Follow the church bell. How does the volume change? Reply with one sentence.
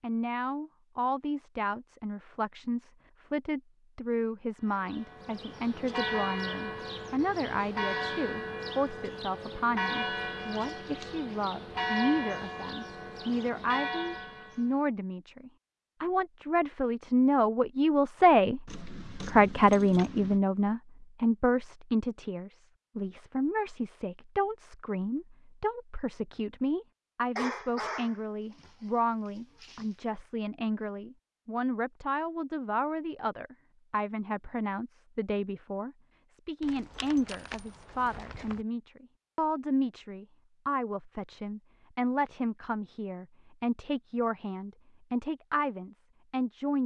The loudness of the church bell stays about the same.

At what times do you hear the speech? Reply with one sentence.
The speech can be heard from 0.0 to 46.8 s.